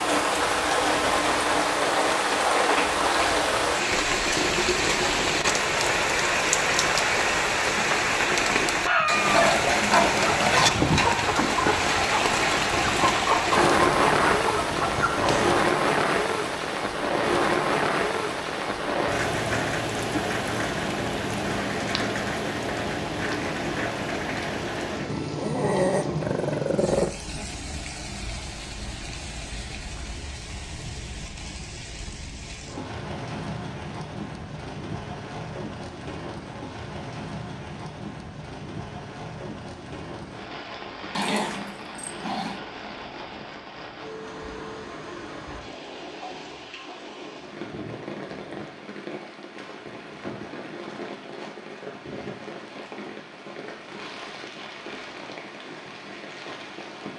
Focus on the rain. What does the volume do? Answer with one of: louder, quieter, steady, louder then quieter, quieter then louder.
quieter.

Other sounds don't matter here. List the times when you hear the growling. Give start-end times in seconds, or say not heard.
25.1-27.1, 41.1-42.6.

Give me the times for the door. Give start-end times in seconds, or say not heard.
not heard.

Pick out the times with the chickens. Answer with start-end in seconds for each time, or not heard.
8.8-15.7.